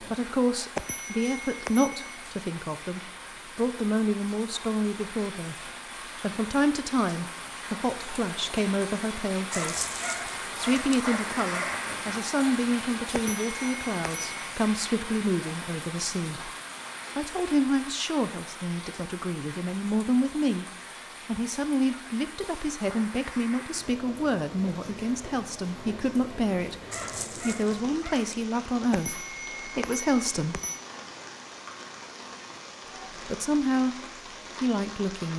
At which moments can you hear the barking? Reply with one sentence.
The barking can be heard from 9.5 to 11.8 s and from 26.9 to 28.4 s.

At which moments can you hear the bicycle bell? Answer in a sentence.
You can hear the bicycle bell from 0.8 to 2.1 s, from 13.1 to 14.3 s and from 28.9 to 30.8 s.